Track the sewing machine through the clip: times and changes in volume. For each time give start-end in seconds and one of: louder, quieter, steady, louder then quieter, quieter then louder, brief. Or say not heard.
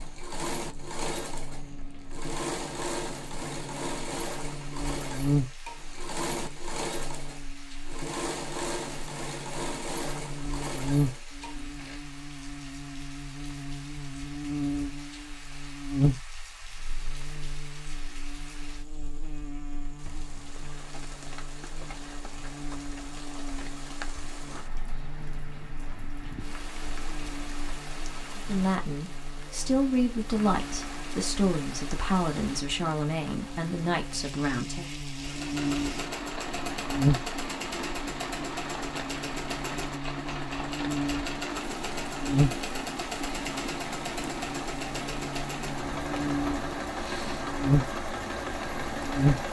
0.0-12.0 steady
35.1-49.4 steady.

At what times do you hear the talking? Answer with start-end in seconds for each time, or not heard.
28.4-34.9.